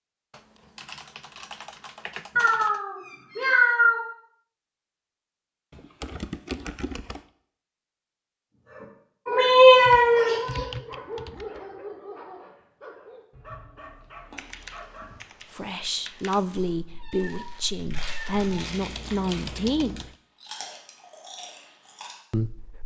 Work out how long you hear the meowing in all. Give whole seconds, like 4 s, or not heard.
5 s.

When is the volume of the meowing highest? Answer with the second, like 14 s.
10 s.